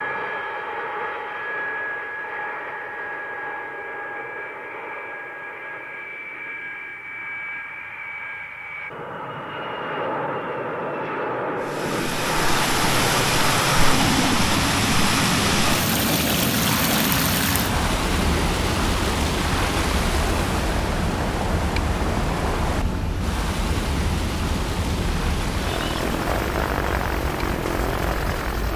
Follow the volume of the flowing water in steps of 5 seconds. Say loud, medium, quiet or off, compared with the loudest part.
off, off, loud, loud, medium, medium.